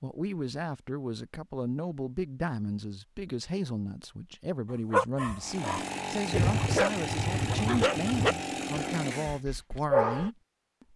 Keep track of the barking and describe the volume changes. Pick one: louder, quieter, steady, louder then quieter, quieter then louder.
louder then quieter.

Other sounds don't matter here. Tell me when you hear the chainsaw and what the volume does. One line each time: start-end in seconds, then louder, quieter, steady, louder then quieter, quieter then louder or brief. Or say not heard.
5.4-9.4 steady.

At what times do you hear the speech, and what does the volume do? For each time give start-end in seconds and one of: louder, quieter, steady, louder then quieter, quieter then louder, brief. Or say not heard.
0.0-10.9 steady.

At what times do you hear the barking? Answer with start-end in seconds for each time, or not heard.
4.9-10.3.